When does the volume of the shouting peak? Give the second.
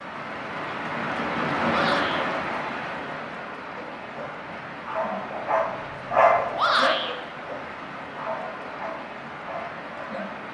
7 s.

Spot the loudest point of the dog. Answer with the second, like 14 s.
6 s.